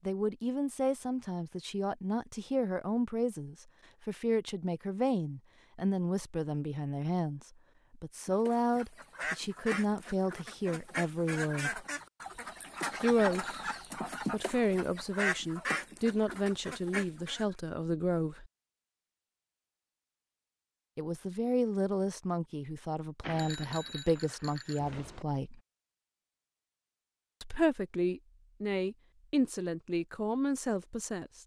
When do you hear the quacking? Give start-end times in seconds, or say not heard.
8.2-17.6.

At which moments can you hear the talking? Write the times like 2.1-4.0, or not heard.
0.1-11.8, 13.0-13.7, 14.3-18.5, 20.9-25.6, 27.4-31.4.